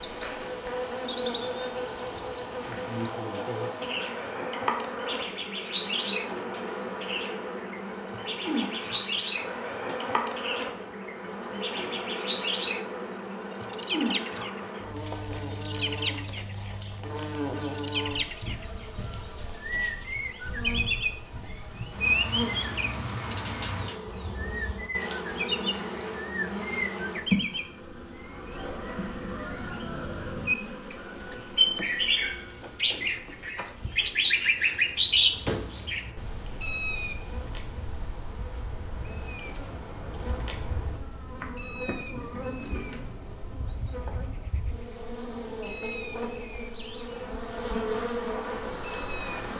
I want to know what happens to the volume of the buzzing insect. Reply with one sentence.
The volume of the buzzing insect goes down, then up.